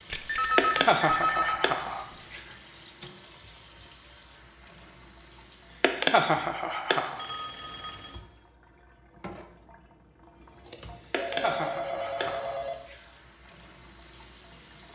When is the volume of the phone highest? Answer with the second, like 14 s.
1 s.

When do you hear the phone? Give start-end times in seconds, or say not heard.
0.1-1.8, 7.2-8.2, 11.2-12.8.